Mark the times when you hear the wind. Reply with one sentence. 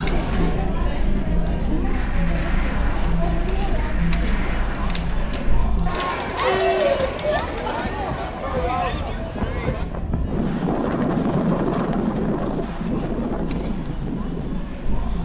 You can hear the wind from 0.0 to 15.1 s.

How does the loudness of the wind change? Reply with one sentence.
The loudness of the wind goes up.